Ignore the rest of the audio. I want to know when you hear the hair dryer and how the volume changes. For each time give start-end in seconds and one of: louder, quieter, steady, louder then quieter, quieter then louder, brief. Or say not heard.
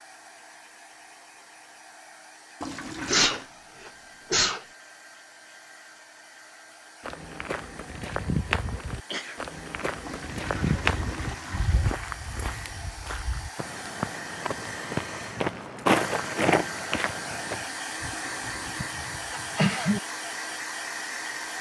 0.0-21.5 louder.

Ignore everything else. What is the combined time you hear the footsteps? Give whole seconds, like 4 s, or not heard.
11 s.